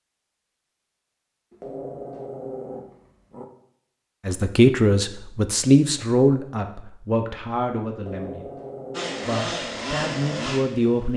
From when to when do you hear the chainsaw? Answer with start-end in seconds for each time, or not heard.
8.9-11.1.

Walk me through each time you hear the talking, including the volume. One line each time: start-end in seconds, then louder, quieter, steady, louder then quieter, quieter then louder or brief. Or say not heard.
4.2-8.5 quieter
9.2-11.1 brief.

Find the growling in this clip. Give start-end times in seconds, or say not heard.
1.5-3.5, 8.0-9.4.